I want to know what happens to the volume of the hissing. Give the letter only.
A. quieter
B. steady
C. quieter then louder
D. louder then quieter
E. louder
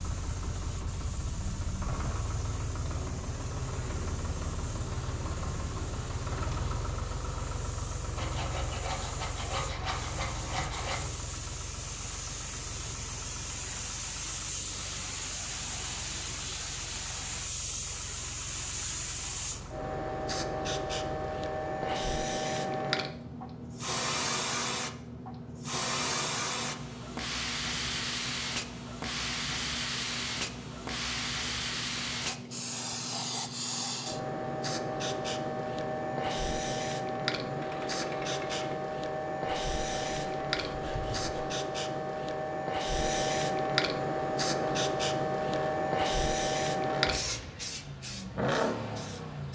E.